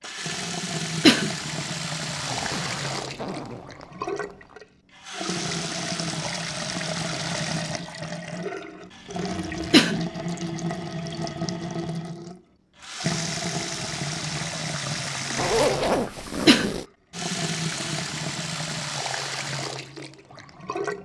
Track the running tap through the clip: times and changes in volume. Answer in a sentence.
You can hear the running tap from 0.0 to 20.9 s, at a steady volume.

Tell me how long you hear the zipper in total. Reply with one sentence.
The zipper can be heard for 5 seconds in total.